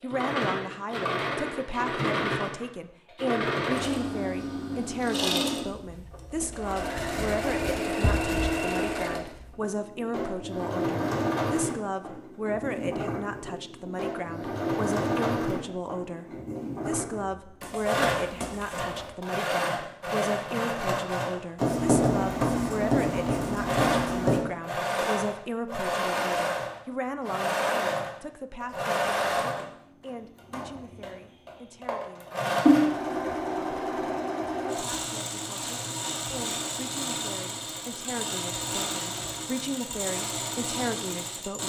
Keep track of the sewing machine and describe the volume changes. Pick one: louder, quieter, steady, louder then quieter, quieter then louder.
steady.